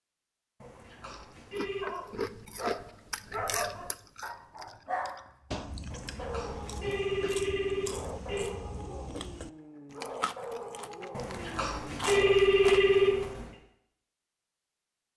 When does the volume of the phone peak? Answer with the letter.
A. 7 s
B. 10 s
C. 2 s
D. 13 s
D.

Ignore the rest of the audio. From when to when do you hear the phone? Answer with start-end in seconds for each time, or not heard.
0.6-1.9, 5.9-8.5, 11.2-13.5.